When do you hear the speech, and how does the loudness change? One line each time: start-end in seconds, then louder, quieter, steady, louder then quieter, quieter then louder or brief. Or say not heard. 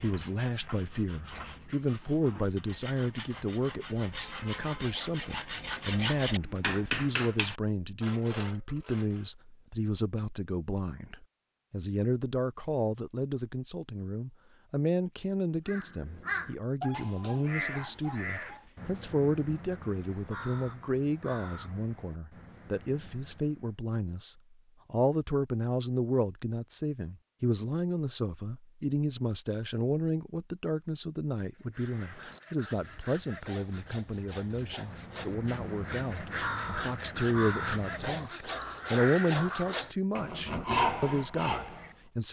0.0-42.2 steady.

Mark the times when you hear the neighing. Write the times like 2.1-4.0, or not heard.
not heard.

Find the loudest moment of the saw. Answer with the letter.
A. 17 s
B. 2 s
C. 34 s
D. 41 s
D.